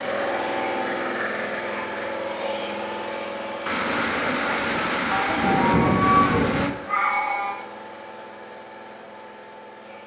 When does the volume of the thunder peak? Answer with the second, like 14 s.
6 s.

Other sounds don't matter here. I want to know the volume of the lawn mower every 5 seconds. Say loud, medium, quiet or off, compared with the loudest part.
loud, medium.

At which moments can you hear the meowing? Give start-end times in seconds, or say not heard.
5.1-7.7.